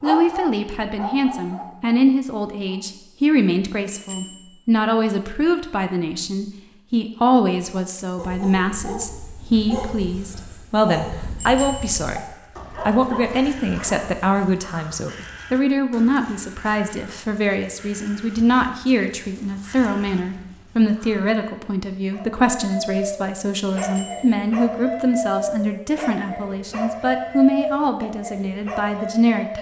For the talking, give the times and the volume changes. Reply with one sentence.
The talking can be heard from 0.0 to 12.2 s, at a steady volume; and from 12.8 to 29.5 s, at a steady volume.